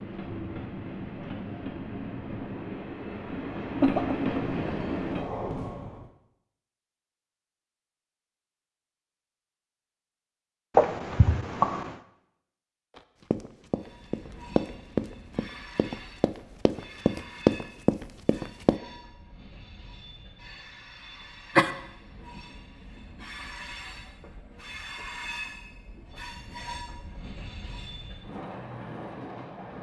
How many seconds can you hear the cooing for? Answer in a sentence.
You can't hear the cooing here.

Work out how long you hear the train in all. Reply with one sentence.
The train can be heard for 22 seconds in total.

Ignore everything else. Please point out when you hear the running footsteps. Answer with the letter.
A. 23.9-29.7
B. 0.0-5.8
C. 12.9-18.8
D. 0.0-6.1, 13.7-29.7
C.